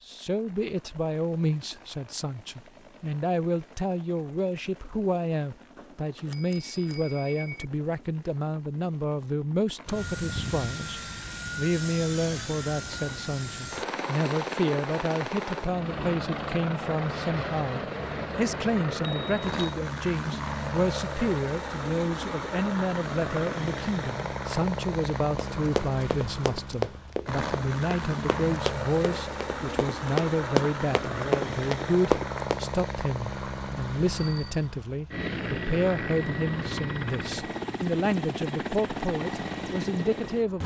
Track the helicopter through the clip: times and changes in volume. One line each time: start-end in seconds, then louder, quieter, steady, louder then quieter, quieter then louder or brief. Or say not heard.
0.0-40.6 louder.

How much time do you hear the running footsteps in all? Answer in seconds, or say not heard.
7 s.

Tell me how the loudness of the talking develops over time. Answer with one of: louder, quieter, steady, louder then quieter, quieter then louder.
steady.